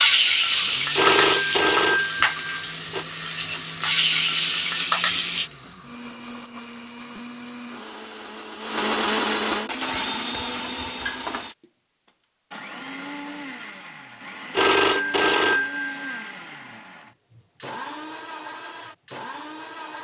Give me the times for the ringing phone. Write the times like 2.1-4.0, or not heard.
0.9-3.0, 14.6-16.2.